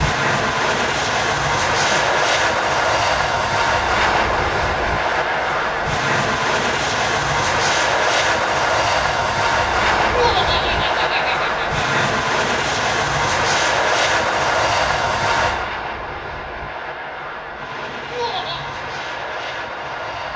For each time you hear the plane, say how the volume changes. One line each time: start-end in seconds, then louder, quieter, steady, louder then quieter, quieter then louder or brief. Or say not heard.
0.0-20.3 quieter.